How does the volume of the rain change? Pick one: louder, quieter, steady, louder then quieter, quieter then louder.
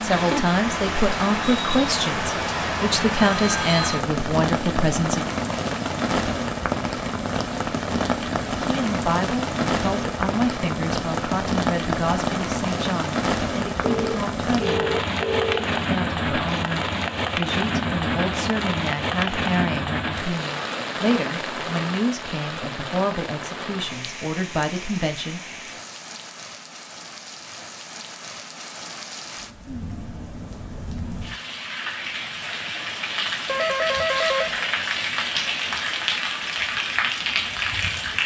quieter then louder.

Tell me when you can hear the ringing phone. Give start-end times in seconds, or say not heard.
3.3-4.0, 13.8-15.7, 33.5-34.5.